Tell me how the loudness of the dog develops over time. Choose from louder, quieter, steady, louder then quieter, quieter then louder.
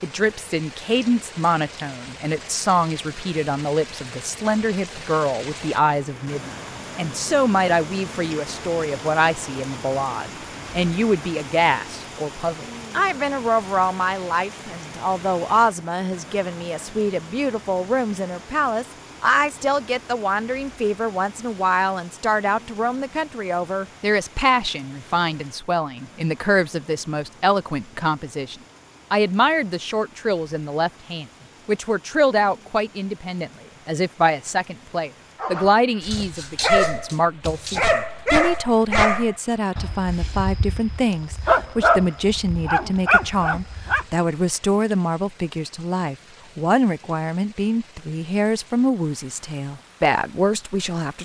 steady.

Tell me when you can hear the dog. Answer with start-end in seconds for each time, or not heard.
35.4-44.0.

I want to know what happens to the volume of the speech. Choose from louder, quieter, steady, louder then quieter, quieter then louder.
steady.